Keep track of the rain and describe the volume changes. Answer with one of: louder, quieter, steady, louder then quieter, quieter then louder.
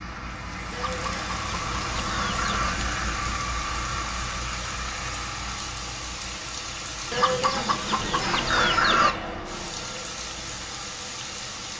steady.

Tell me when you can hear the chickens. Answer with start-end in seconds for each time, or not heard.
0.7-2.8, 7.1-9.2.